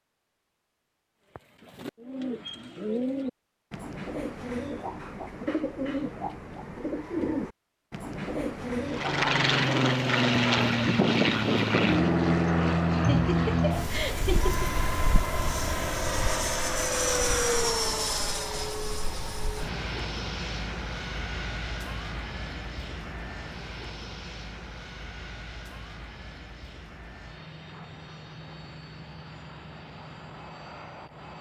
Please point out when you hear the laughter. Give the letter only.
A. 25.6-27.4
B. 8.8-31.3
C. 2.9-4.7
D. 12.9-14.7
D.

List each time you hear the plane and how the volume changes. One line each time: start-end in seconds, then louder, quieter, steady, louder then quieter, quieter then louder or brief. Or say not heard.
8.8-31.3 quieter.